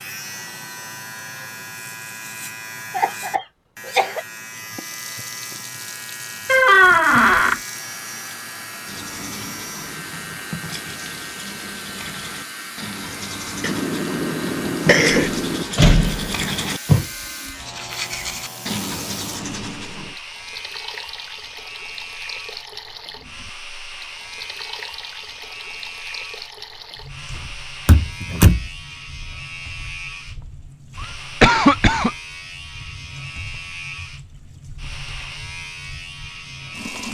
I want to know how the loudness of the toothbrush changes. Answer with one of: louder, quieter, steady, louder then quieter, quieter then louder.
louder then quieter.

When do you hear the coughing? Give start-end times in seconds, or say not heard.
2.9-4.2, 13.6-15.7, 31.0-32.1.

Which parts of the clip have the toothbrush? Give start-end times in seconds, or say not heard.
8.8-20.1.